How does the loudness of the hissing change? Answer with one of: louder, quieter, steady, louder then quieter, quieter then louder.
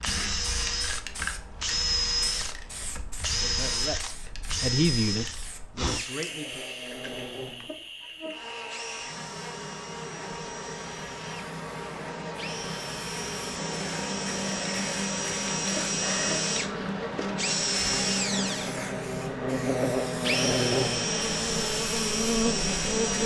louder.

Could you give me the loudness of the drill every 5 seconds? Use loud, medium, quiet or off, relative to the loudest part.
loud, medium, medium, loud, loud.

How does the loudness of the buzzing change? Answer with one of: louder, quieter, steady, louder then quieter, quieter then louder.
louder.